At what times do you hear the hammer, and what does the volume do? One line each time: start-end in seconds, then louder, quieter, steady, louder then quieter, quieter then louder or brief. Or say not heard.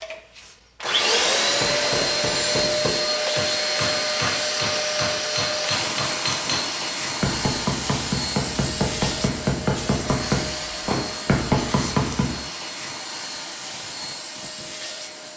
1.4-12.3 louder.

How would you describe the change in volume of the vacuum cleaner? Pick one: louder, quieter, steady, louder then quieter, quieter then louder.
quieter.